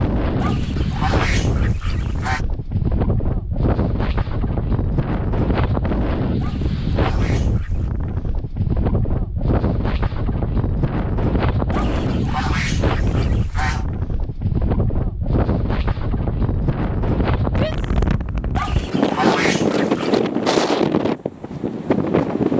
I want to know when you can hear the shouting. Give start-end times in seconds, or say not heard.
17.5-18.1.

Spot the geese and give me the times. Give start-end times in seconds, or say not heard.
0.4-2.5, 6.4-7.9, 11.7-13.8, 18.6-20.2.